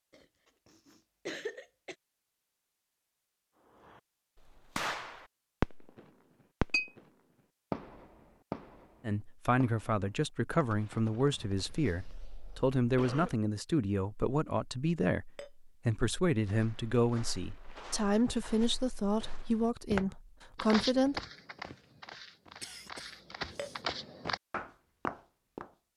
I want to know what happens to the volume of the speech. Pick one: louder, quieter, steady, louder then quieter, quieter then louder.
steady.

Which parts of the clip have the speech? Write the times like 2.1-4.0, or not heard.
9.1-21.2.